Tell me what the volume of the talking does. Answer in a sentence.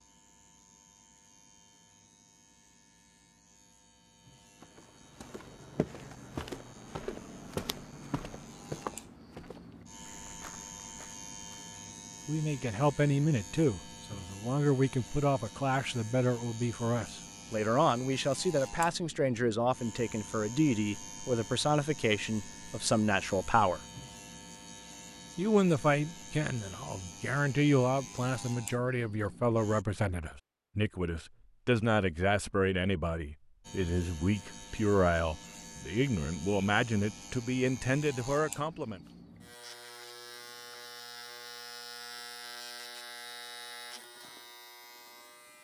The volume of the talking stays about the same.